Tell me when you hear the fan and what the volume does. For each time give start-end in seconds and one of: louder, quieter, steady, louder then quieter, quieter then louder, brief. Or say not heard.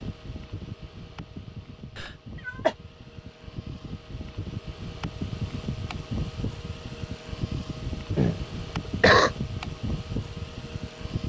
0.0-11.2 louder.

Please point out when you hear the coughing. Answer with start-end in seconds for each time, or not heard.
1.9-2.8, 8.2-9.3.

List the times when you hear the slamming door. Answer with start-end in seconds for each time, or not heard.
not heard.